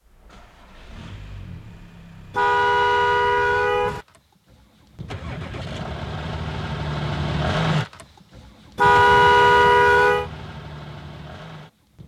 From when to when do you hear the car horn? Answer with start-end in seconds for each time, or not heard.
2.3-4.0, 8.8-10.3.